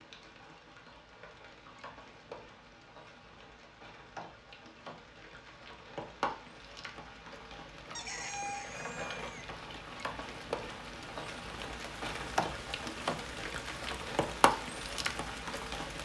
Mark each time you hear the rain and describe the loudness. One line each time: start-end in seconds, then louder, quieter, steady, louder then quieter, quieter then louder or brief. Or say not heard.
0.0-16.0 louder.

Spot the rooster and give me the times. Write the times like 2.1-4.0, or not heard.
8.0-9.5.